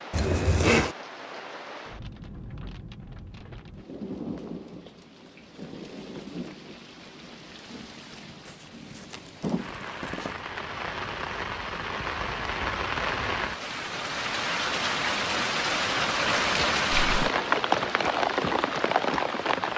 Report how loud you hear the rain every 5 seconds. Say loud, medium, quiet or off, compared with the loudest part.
quiet, quiet, medium, loud.